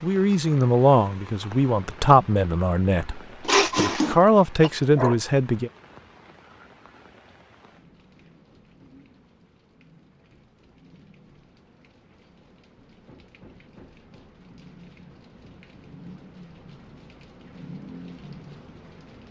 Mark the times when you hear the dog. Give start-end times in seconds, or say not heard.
3.4-5.2.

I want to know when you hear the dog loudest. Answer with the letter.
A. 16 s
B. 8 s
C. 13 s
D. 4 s
D.